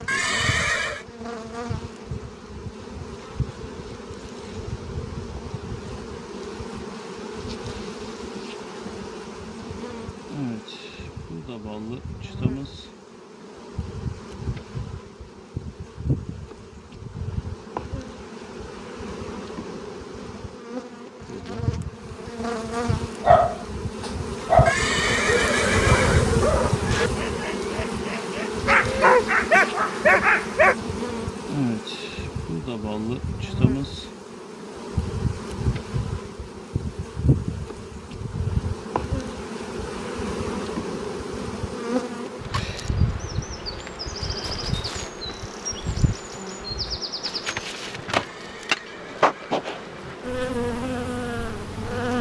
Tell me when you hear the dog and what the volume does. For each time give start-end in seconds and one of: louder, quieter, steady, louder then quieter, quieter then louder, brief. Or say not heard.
23.2-30.8 quieter then louder.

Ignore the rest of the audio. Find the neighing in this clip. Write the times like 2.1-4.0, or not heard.
0.1-1.1, 24.6-26.4, 48.1-50.2.